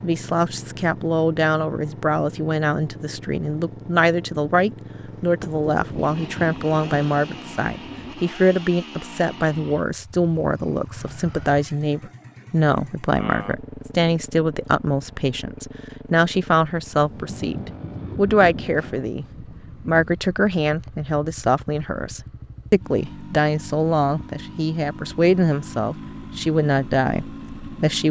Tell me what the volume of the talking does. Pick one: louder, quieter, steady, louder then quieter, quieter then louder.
steady.